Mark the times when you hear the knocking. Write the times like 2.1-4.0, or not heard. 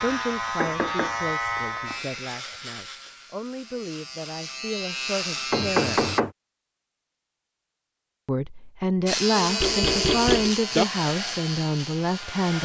0.6-1.9, 5.5-6.3, 9.3-10.8.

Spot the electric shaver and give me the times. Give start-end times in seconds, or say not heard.
0.0-6.2, 9.1-12.4.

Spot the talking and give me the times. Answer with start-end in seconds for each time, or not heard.
0.0-6.1, 8.2-12.6.